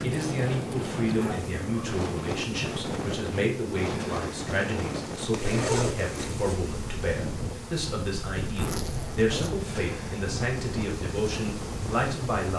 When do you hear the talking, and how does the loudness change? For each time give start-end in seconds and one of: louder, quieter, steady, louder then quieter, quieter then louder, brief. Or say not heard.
0.0-12.5 steady.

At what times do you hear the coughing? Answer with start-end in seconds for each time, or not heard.
not heard.